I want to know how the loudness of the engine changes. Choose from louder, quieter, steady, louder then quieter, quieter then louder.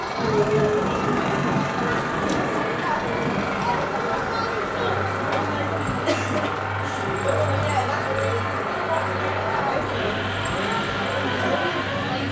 steady.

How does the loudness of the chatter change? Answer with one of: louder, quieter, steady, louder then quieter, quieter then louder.
steady.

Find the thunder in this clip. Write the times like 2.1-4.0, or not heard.
0.1-3.5.